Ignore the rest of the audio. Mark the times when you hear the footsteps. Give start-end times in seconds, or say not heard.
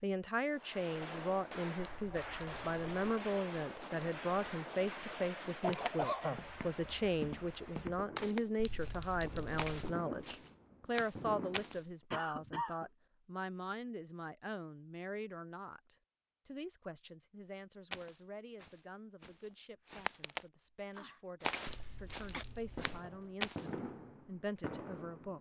5.7-11.8, 17.9-23.7.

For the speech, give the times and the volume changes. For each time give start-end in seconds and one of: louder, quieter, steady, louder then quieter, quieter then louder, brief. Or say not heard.
0.0-25.3 quieter.